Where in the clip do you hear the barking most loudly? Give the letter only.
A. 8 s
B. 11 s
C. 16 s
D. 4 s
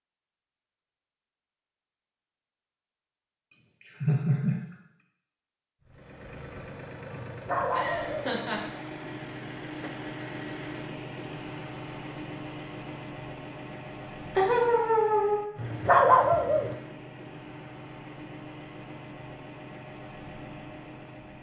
C.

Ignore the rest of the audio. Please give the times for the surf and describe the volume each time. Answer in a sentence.
The surf can't be heard in this clip.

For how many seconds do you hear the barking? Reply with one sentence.
You can hear the barking for 2 seconds altogether.